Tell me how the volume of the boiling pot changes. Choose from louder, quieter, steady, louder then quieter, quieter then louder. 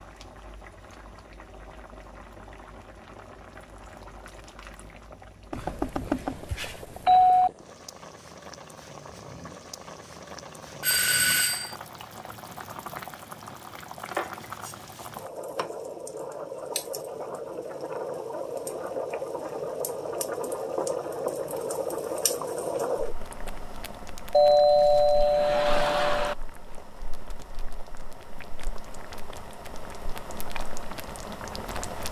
louder then quieter.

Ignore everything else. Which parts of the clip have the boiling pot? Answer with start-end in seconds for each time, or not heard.
0.0-32.0.